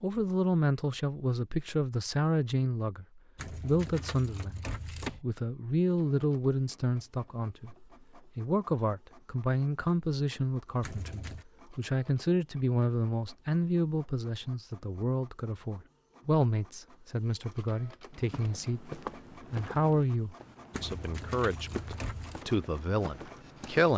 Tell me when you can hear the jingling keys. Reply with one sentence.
The jingling keys can be heard from 3.4 to 5.2 s, from 10.8 to 11.4 s and from 20.7 to 22.4 s.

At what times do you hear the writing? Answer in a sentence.
You can't hear the writing here.